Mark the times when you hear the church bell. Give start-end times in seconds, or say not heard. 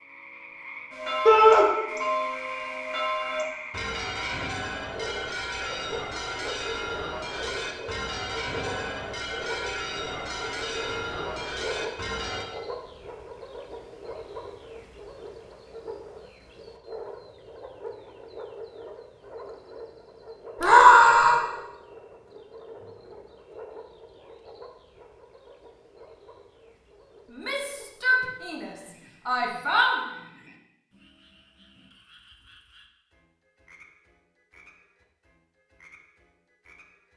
0.9-12.4.